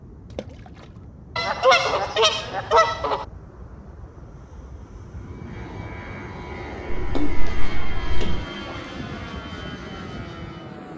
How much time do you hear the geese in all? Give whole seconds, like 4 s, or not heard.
3 s.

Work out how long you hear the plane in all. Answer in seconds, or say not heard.
11 s.